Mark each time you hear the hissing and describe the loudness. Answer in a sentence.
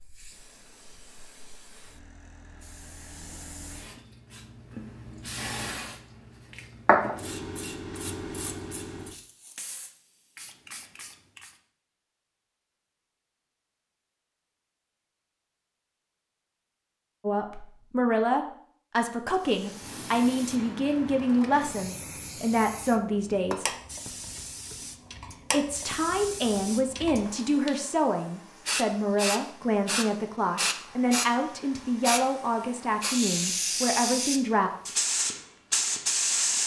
The hissing can be heard from 0.0 to 11.6 s, getting louder then quieter; and from 19.3 to 36.6 s, getting louder.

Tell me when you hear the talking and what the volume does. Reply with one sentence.
You can hear the talking from 17.2 to 23.6 s, at a steady volume; and from 25.5 to 34.7 s, at a steady volume.